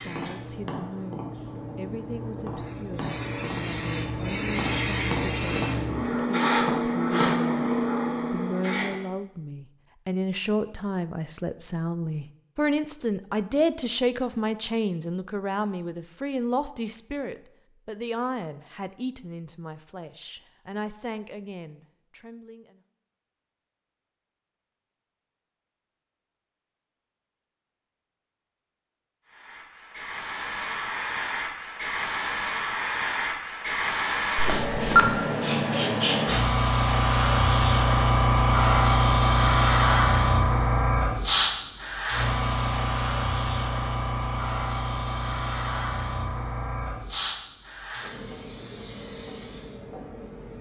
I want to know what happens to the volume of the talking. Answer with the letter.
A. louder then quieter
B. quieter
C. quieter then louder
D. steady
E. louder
A.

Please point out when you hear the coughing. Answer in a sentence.
The coughing can't be heard in this clip.